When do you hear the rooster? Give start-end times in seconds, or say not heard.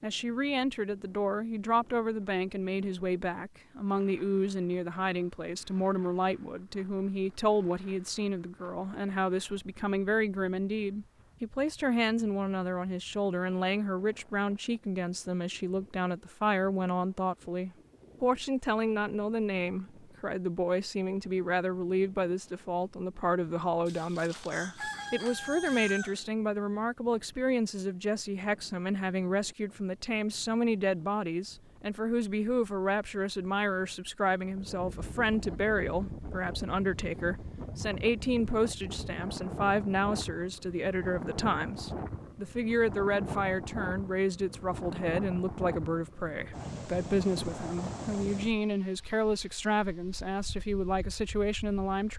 23.9-26.2.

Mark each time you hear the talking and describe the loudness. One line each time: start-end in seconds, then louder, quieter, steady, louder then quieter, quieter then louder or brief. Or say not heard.
0.0-52.1 steady.